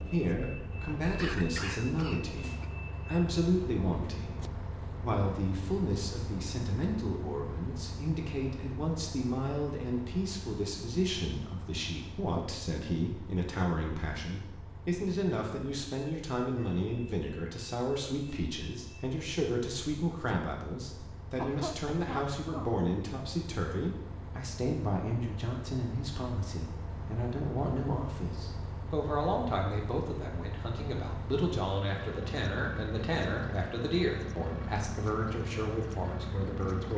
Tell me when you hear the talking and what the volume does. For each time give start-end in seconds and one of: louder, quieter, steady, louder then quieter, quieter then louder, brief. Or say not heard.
0.1-36.9 steady.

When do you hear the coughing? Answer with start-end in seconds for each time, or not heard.
1.1-2.6, 21.4-22.8.